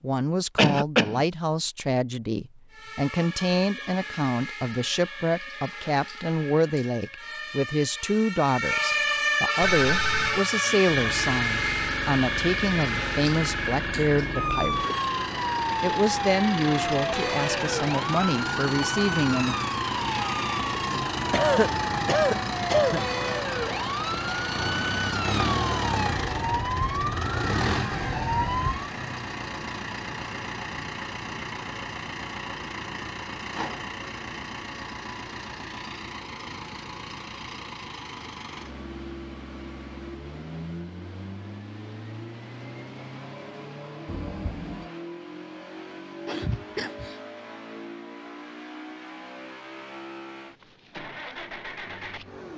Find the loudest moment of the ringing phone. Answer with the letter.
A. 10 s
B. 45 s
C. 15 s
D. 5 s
A.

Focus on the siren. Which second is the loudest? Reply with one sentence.
The volume of the siren peaks at 9 seconds.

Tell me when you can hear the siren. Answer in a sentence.
The siren can be heard from 2.7 to 28.9 s.